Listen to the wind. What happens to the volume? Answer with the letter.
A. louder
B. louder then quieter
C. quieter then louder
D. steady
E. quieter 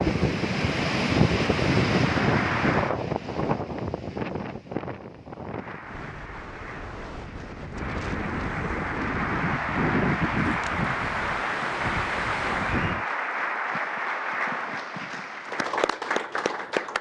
C.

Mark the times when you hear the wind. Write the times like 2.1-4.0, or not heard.
0.0-13.1.